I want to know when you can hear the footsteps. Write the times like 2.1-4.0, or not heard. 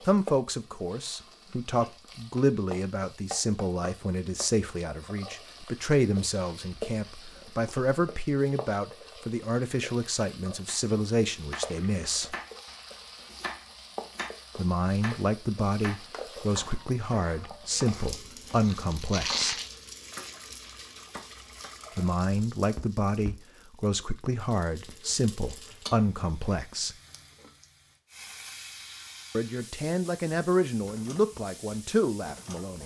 not heard.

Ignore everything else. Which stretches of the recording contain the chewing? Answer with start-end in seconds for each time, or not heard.
6.7-7.9, 18.3-20.4.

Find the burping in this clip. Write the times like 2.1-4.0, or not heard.
not heard.